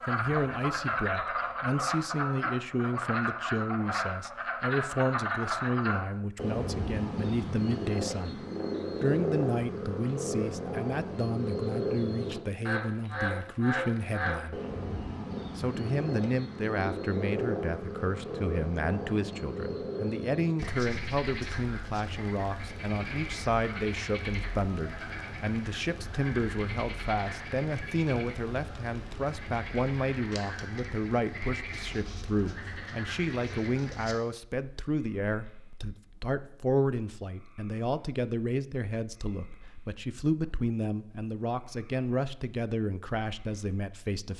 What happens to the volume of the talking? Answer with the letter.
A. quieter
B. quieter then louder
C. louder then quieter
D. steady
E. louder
D.